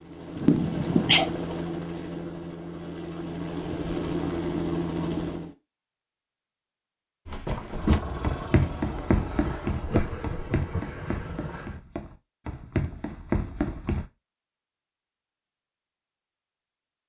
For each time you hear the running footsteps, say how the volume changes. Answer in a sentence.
The running footsteps can be heard from 7.2 to 14.1 s, getting quieter then louder.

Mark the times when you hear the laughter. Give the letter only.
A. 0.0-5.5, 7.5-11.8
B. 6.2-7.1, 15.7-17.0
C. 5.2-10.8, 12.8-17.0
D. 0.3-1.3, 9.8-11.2
D.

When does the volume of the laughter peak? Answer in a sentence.
The loudest moment of the laughter is at 1 second.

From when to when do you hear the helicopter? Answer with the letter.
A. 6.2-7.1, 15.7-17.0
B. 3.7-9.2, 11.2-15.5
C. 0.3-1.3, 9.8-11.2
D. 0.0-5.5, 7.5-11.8
D.